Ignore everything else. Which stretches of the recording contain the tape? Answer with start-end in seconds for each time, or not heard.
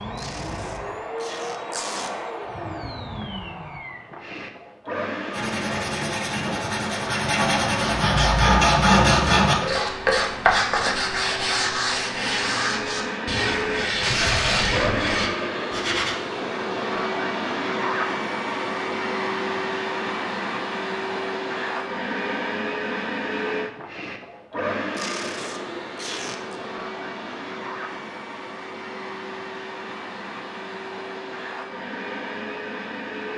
0.1-2.1, 14.0-15.0, 24.9-26.6.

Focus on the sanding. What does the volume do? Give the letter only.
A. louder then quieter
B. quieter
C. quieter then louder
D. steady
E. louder
A.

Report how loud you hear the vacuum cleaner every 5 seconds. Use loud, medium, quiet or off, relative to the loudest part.
medium, medium, loud, loud, loud, medium, medium.